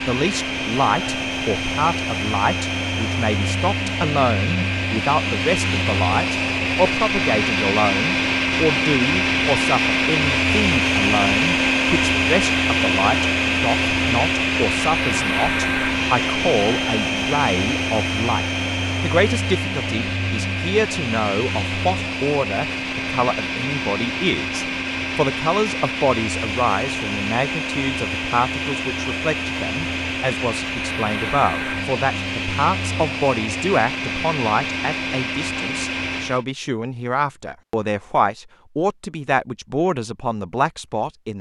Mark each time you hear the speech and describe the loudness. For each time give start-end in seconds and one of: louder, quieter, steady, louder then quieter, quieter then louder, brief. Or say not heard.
0.1-41.3 steady.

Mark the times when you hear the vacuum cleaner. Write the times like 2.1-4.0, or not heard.
0.0-36.5.